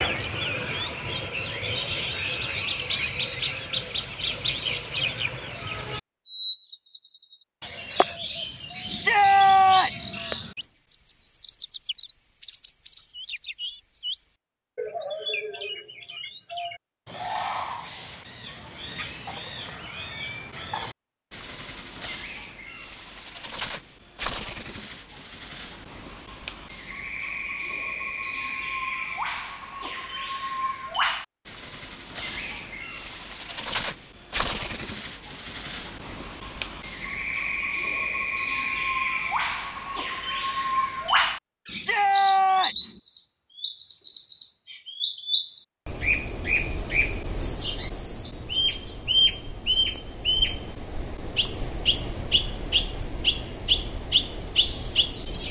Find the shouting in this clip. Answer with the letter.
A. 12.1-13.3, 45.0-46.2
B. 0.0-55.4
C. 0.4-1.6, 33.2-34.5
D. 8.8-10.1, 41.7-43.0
D.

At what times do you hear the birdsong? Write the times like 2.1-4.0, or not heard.
0.0-55.4.